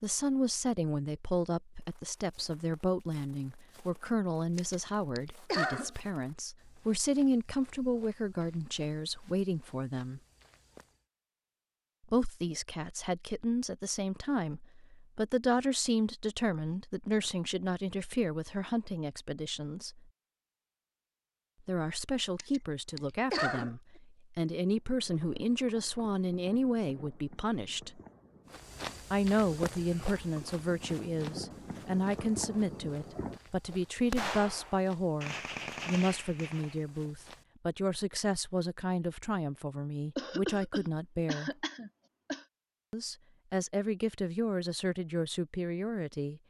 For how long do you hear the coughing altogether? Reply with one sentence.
The coughing can be heard for 5 seconds in total.